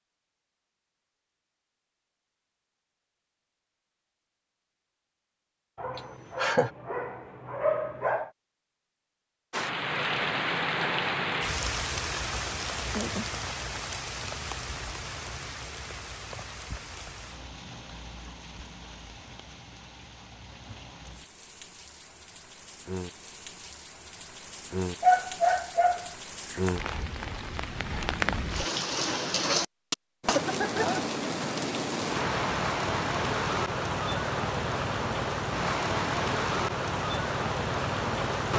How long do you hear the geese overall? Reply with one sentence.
You can't hear the geese here.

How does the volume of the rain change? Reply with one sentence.
The loudness of the rain goes down, then up.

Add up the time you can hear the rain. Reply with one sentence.
You can hear the rain for 29 seconds altogether.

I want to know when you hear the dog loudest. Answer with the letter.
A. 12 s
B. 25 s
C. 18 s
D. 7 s
B.